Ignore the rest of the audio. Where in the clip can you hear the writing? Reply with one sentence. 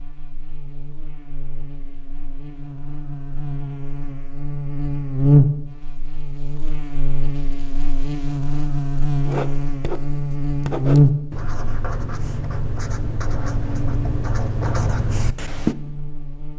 The writing can be heard from 9.2 to 15.8 s.